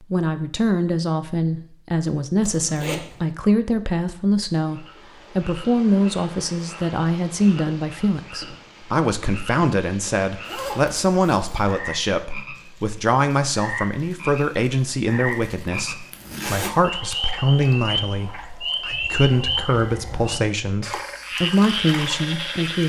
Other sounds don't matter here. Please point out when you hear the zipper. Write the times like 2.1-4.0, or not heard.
2.4-3.2, 10.4-11.7, 16.1-16.8.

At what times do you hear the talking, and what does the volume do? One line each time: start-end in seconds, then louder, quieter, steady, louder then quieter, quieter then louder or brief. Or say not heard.
0.0-22.8 steady.